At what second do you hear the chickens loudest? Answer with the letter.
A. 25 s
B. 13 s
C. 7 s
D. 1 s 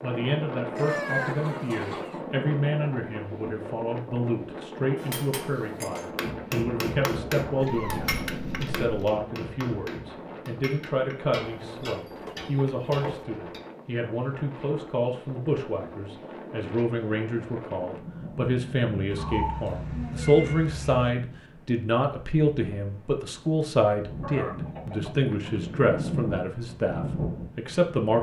D.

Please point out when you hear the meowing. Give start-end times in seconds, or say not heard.
7.6-9.1, 19.1-21.1.